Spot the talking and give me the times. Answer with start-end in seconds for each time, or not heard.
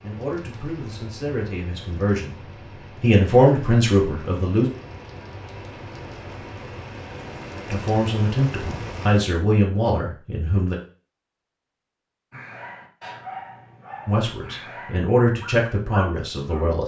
0.0-4.7, 7.7-10.8, 14.1-16.8.